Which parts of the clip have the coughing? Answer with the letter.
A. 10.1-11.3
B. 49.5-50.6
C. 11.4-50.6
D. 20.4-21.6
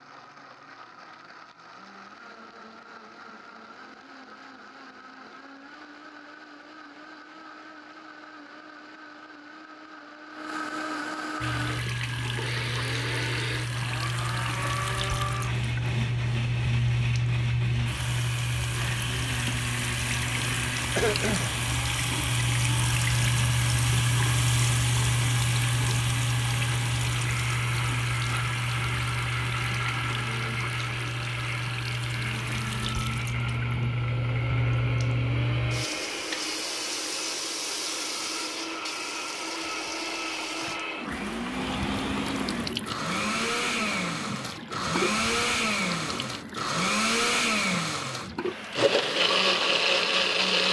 D.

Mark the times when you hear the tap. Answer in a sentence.
You can hear the tap from 11.4 to 50.6 s.